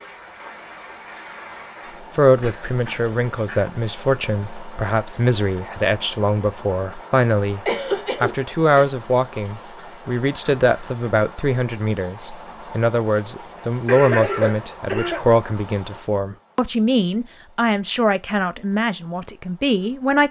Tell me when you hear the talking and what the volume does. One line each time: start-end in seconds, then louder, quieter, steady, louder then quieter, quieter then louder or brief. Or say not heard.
2.1-20.2 steady.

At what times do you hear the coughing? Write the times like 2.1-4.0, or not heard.
2.4-3.6, 7.7-8.8, 13.8-15.2.